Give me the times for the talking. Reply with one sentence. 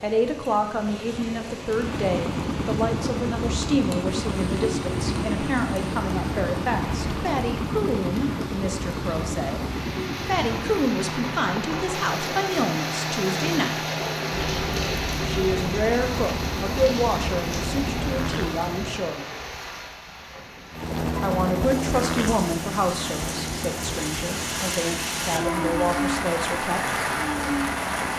The talking can be heard from 0.0 to 13.8 s, from 15.2 to 19.2 s and from 21.2 to 26.9 s.